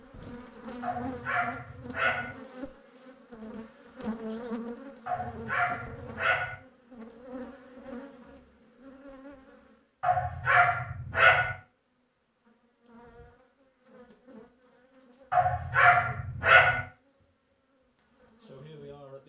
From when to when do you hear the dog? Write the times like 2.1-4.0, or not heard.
0.8-2.4, 5.0-6.5, 10.0-11.6, 15.3-16.8.